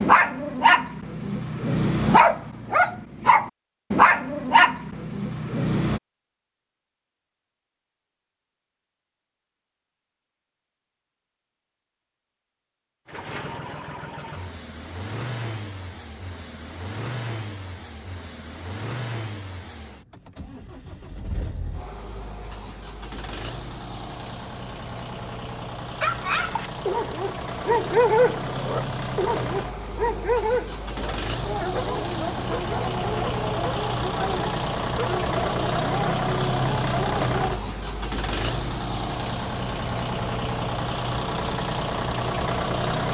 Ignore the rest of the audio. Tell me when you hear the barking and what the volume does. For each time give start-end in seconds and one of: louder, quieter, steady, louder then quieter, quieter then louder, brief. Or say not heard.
0.0-6.0 steady
26.0-37.6 quieter.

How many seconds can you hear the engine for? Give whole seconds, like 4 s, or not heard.
30 s.